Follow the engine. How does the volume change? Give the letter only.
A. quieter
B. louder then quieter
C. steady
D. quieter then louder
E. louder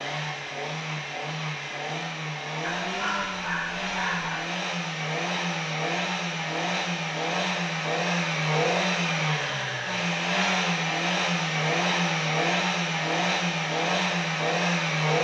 E.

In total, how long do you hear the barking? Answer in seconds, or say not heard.
2 s.